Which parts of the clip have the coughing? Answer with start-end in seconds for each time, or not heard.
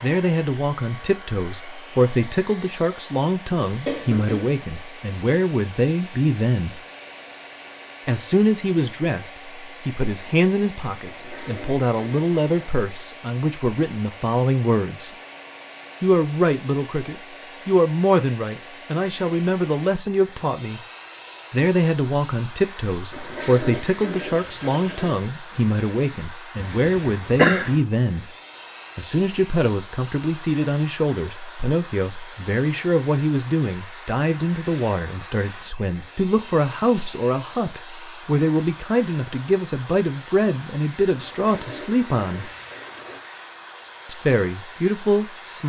3.9-4.5, 26.6-27.8.